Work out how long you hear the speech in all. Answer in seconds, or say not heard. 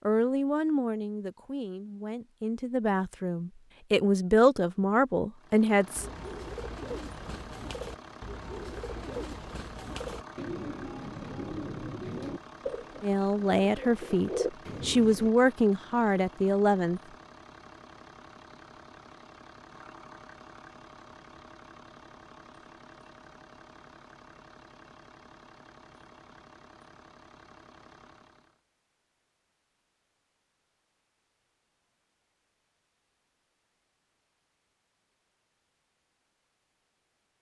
10 s.